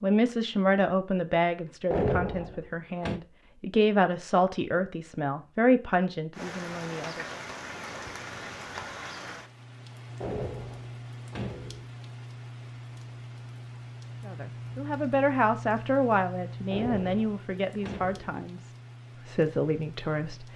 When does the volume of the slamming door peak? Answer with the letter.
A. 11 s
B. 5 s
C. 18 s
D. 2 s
D.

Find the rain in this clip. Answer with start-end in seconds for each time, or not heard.
6.3-20.5.